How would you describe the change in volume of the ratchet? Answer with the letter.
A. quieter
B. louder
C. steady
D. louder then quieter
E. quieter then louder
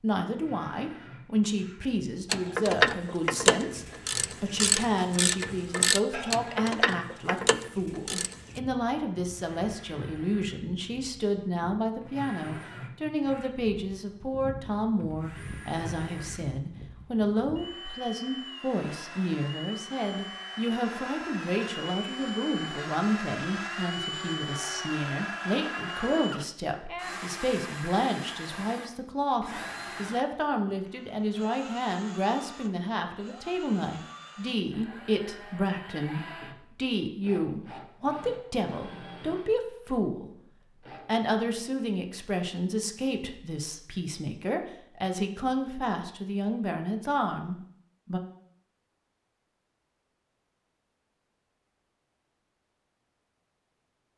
A.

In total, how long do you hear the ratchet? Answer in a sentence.
You can hear the ratchet for 6 seconds altogether.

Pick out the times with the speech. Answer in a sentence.
You can hear the speech from 0.0 to 40.3 s and from 41.0 to 48.2 s.